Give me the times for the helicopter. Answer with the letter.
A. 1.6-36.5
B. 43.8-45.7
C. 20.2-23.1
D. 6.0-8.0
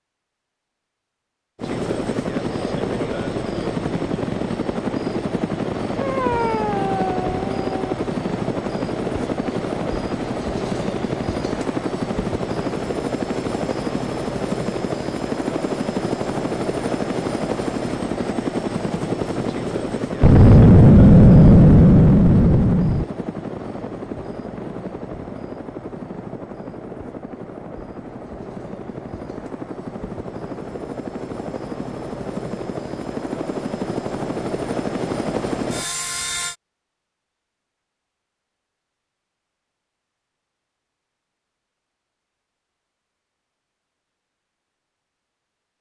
A.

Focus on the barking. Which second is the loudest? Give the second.
6 s.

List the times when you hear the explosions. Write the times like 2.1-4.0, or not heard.
20.2-23.1.